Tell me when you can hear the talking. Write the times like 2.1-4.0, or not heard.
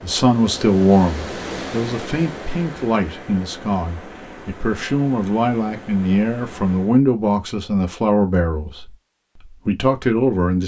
0.0-10.6.